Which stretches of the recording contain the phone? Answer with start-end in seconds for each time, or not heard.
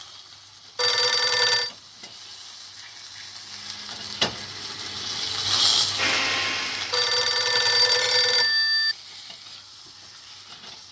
0.8-1.7, 6.9-8.9.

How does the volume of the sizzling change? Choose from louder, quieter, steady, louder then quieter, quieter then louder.
louder then quieter.